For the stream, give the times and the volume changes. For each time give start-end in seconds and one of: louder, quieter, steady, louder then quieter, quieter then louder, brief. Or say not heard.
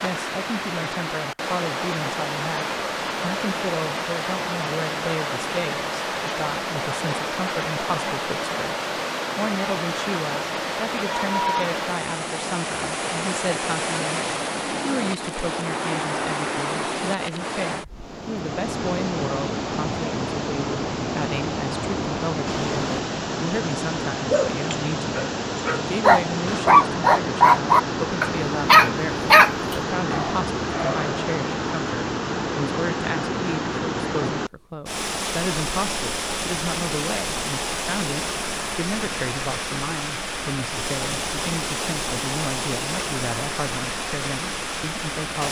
0.0-45.4 steady.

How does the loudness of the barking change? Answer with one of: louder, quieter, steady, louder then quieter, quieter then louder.
louder then quieter.